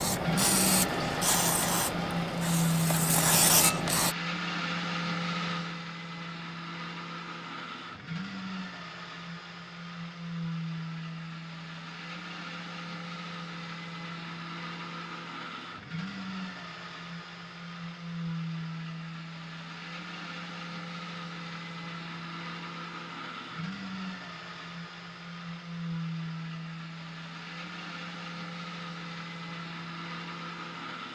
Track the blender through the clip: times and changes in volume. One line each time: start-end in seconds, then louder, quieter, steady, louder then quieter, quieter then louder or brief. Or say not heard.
0.0-31.1 quieter.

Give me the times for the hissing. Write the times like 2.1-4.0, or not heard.
0.0-4.2.